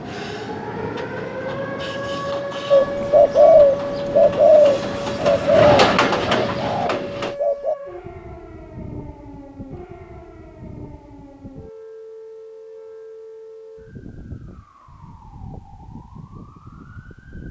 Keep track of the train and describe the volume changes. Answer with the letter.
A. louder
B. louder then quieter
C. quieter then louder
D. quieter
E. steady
A.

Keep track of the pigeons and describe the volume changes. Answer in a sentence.
The loudness of the pigeons goes down.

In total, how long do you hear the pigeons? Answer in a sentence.
The pigeons can be heard for 5 seconds in total.